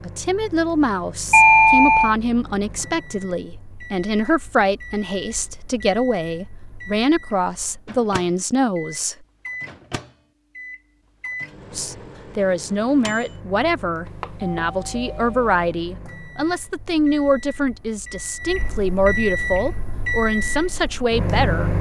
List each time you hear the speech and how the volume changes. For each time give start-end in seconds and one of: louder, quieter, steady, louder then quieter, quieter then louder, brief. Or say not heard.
0.0-9.2 steady
11.7-21.7 steady.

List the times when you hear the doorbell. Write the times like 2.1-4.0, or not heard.
1.3-2.1, 14.2-15.7.